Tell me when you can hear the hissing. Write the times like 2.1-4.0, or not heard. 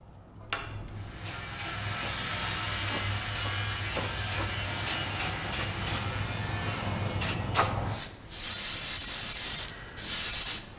0.0-10.7.